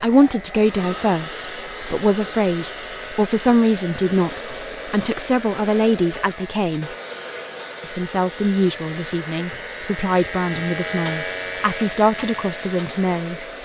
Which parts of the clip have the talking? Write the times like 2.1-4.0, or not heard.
0.0-6.9, 7.8-13.6.